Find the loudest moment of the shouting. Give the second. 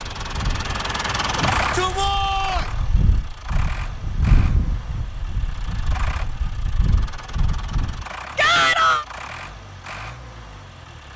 9 s.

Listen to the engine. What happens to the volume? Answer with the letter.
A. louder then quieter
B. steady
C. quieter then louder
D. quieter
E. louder
D.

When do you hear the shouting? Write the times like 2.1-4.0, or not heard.
1.4-2.6, 8.3-9.1.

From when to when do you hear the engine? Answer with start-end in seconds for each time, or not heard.
0.0-11.1.